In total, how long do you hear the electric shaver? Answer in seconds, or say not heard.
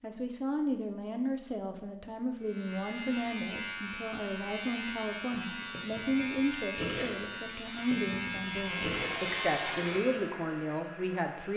8 s.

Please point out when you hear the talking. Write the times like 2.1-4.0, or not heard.
0.0-11.5.